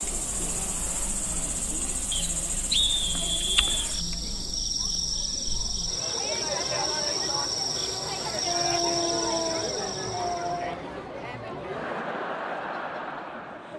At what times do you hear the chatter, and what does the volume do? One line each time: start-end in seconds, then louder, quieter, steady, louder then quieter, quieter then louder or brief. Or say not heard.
0.0-13.7 louder.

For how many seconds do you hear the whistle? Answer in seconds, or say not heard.
2 s.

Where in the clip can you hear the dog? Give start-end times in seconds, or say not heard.
8.4-10.7.